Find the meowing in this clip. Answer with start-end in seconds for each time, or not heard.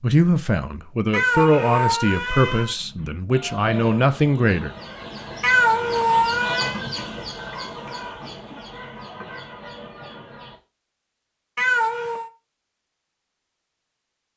1.1-2.8, 5.4-6.8, 11.6-12.3.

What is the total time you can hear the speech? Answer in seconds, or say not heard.
5 s.